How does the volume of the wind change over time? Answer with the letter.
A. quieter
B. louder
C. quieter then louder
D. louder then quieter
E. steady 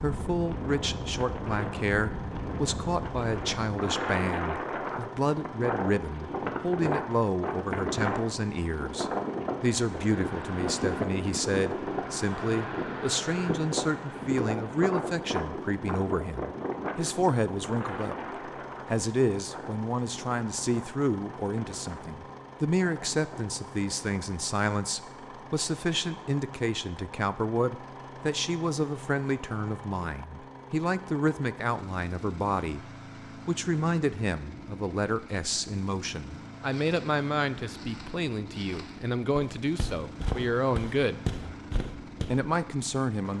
A.